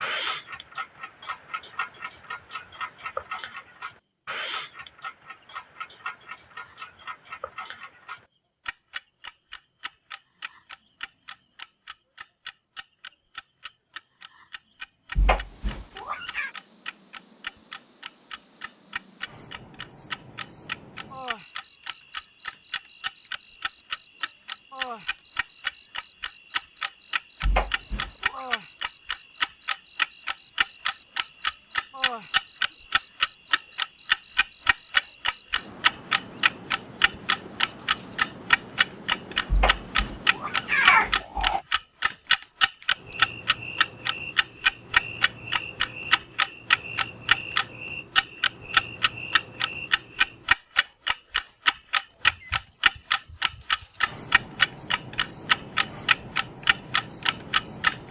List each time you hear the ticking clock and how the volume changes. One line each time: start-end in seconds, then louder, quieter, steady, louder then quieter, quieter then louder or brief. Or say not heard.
0.0-58.0 louder.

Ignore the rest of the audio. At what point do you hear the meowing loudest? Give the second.
41 s.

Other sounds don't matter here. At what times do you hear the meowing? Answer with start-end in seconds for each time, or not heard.
15.2-16.5, 27.4-28.4, 39.5-41.6.